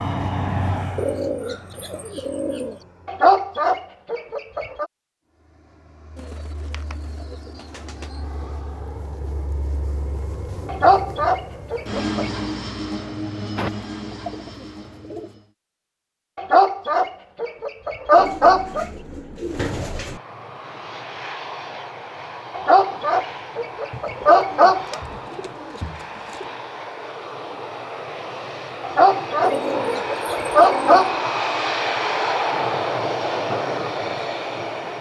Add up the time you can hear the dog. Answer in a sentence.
The dog can be heard for 11 seconds in total.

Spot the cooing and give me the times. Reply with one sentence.
You can hear the cooing from 0.9 to 2.9 s, from 6.2 to 8.2 s, from 13.6 to 15.3 s, from 18.1 to 20.2 s, from 23.9 to 26.5 s and from 29.4 to 31.1 s.